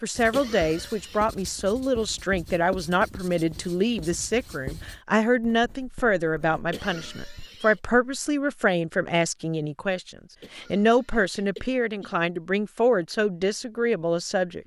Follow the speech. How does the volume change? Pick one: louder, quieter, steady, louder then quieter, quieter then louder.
steady.